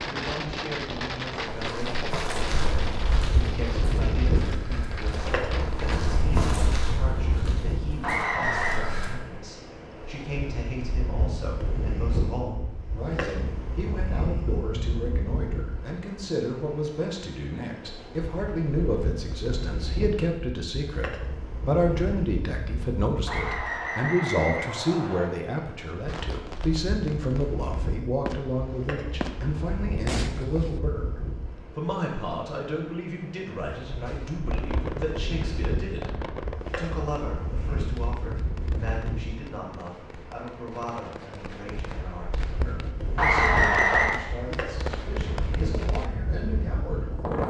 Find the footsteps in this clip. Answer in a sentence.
You can hear the footsteps from 1.6 to 9.2 s.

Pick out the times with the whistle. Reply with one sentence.
You can hear the whistle from 8.0 to 8.8 s, from 23.2 to 25.3 s and from 43.1 to 44.1 s.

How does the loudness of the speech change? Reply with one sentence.
The loudness of the speech goes up, then down.